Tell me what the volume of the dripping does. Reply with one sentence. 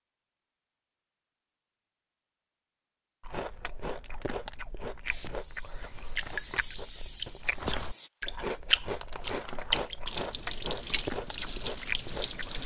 The loudness of the dripping goes up, then down.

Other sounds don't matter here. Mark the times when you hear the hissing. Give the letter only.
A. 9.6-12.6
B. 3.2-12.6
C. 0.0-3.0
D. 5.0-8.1
D.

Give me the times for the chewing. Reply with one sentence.
You can hear the chewing from 3.2 to 12.6 s.